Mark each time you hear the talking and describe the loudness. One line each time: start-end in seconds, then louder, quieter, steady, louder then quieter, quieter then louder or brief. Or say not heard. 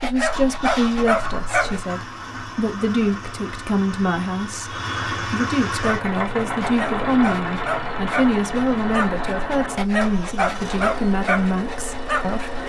0.0-12.6 steady.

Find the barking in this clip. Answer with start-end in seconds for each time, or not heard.
0.0-1.9, 6.0-12.6.